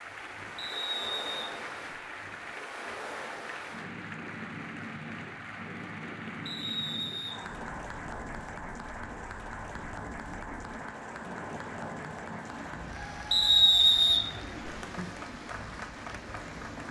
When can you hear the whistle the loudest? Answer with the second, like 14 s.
14 s.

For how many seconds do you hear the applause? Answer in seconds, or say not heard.
17 s.